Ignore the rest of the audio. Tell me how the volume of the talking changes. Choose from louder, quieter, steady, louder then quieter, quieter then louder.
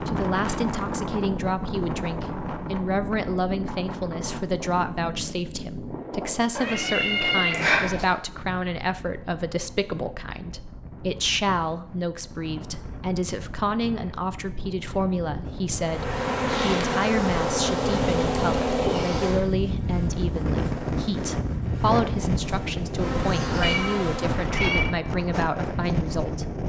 steady.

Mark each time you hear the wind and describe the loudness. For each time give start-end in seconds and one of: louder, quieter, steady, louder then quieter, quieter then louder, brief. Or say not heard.
0.0-26.6 quieter then louder.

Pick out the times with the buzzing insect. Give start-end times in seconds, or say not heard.
15.8-24.6.